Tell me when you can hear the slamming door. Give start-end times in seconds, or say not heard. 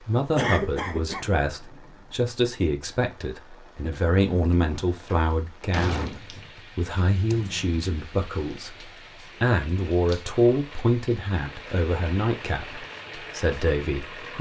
5.0-6.5.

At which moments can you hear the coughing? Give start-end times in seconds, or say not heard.
0.3-1.3, 7.2-7.7.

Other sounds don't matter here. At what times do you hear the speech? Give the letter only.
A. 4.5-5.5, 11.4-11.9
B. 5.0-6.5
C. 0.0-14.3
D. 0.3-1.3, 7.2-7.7
C.